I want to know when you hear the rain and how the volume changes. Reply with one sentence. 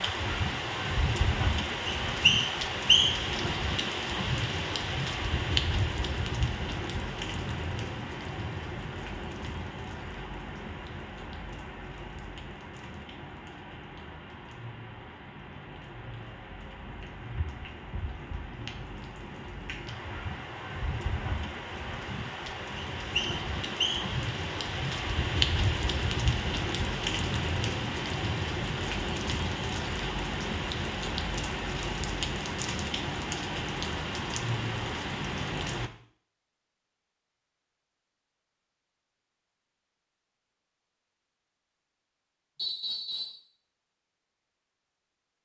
The rain can be heard from 0.0 to 35.9 s, getting quieter then louder.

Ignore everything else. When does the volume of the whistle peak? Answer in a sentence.
The loudest moment of the whistle is at 3 seconds.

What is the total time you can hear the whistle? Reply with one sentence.
You can hear the whistle for 3 seconds altogether.